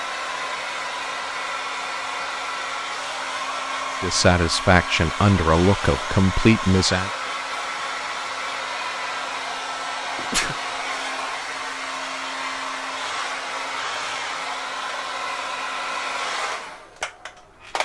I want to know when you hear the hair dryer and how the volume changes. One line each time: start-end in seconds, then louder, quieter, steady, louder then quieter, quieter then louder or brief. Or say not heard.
0.0-17.8 steady.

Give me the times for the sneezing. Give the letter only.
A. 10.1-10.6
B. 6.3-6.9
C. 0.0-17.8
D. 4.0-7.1
A.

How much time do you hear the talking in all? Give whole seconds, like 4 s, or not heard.
3 s.